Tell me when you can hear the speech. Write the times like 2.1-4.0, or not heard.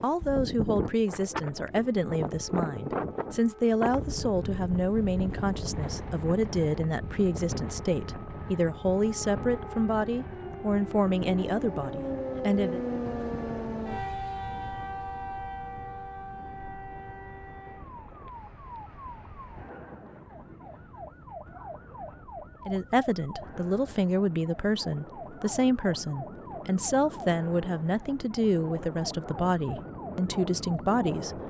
0.0-12.8, 22.6-31.4.